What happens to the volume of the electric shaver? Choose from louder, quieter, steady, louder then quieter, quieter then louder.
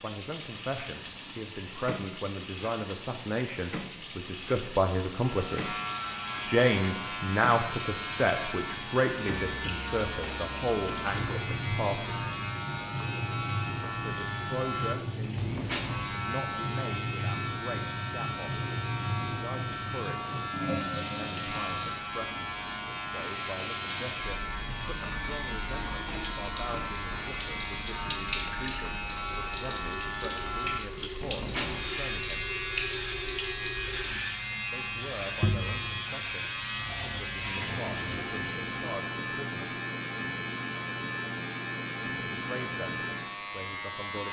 steady.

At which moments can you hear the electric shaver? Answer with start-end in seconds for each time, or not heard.
5.2-44.2.